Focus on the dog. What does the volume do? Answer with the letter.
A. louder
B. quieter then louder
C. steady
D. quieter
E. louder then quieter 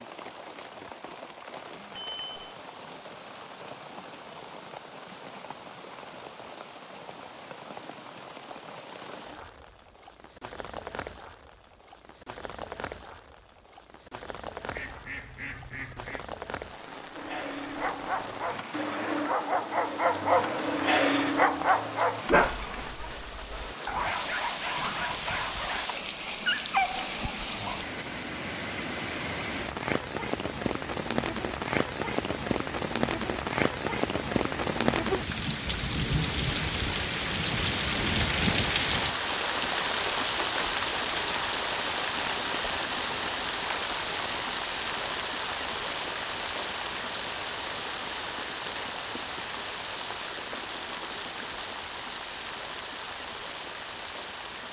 E.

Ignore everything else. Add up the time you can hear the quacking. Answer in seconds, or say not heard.
2 s.